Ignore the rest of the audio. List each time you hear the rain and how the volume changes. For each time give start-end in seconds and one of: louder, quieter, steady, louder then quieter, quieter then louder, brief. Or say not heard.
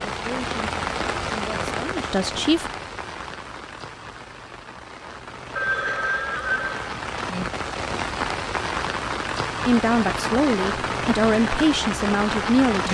0.0-12.8 quieter then louder.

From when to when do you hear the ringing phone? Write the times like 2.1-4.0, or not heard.
5.5-7.5.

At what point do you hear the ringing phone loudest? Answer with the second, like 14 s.
6 s.